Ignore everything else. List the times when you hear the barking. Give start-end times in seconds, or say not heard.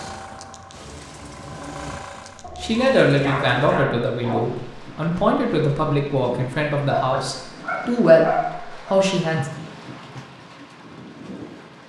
2.4-4.5, 6.9-8.9.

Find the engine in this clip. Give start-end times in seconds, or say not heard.
0.0-2.5.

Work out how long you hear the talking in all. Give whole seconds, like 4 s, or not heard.
7 s.